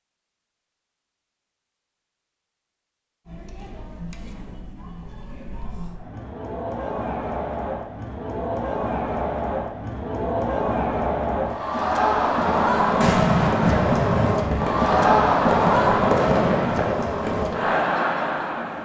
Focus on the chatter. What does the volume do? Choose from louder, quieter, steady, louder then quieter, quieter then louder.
louder.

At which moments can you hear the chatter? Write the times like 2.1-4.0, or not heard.
3.2-18.8.